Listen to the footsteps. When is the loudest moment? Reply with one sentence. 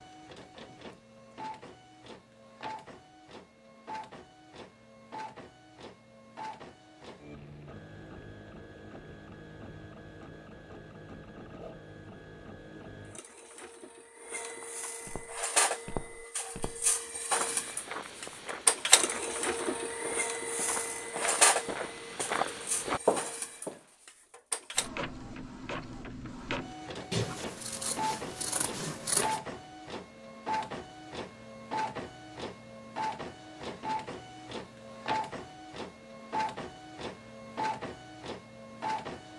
The loudest moment of the footsteps is at 23 seconds.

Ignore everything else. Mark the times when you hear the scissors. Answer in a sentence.
You can hear the scissors from 27.1 to 29.4 s.